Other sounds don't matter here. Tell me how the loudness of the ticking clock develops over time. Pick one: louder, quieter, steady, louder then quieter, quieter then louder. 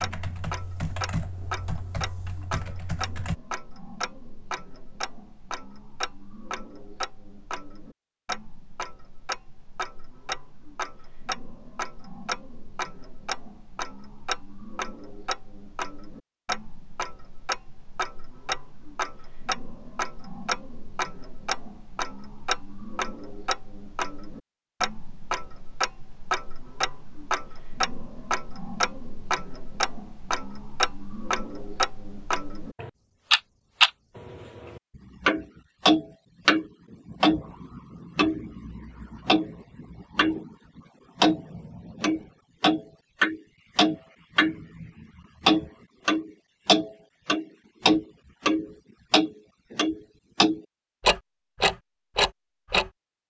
louder.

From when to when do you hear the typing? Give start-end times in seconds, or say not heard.
0.0-3.4.